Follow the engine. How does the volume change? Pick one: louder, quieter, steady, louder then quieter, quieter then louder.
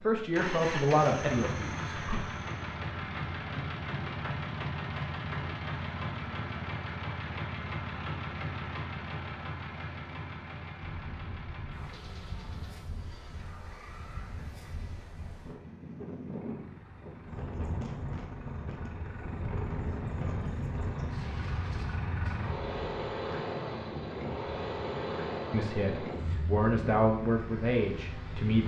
quieter then louder.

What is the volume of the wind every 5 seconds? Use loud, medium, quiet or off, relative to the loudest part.
off, off, medium, loud, loud, loud.